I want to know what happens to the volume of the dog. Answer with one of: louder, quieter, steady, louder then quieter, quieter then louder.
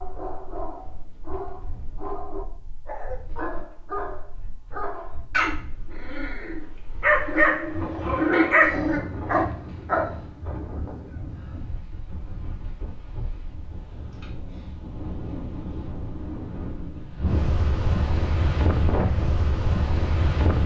louder.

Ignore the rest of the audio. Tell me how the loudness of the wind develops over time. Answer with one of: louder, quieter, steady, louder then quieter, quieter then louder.
louder.